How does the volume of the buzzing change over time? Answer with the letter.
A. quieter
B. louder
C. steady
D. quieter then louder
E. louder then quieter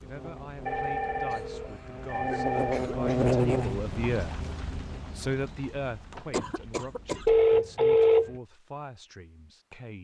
E.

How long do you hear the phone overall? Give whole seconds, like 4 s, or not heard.
3 s.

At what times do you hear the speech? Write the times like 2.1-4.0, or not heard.
0.0-4.5, 5.2-9.9.